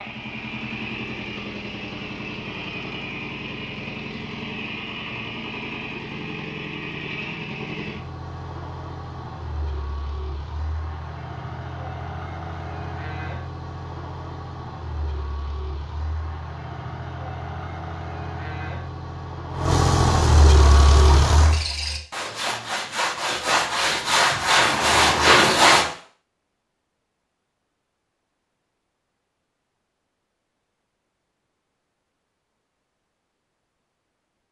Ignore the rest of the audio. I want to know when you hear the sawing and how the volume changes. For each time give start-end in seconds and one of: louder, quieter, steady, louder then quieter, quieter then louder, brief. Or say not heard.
20.6-25.9 louder.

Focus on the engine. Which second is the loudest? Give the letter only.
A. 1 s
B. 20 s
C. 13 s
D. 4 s
B.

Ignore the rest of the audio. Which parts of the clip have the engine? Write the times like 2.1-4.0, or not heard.
0.0-21.6.